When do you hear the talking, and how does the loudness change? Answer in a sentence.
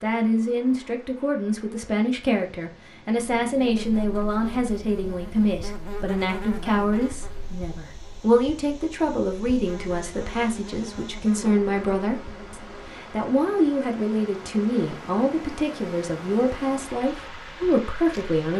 You can hear the talking from 0.0 to 18.5 s, at a steady volume.